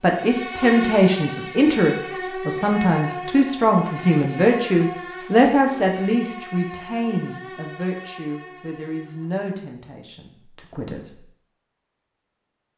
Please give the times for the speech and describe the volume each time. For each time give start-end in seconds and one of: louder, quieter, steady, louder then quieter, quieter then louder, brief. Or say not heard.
0.0-11.2 quieter.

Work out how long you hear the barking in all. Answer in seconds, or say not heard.
not heard.